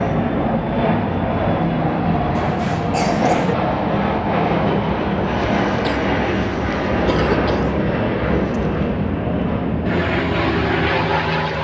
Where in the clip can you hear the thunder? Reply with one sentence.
The thunder can't be heard in this clip.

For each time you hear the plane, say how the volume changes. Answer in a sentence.
The plane can be heard from 0.0 to 11.5 s, at a steady volume.